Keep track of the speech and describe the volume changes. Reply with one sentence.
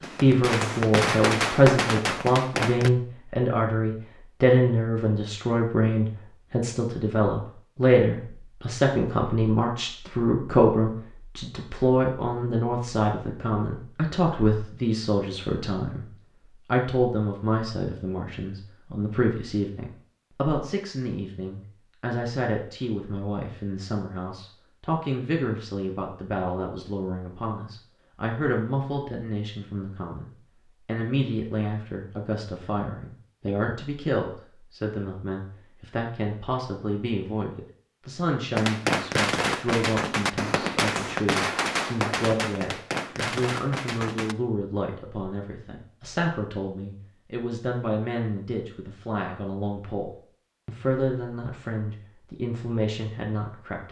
The loudness of the speech goes down.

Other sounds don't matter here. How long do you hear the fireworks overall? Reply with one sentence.
The fireworks can be heard for 9 seconds in total.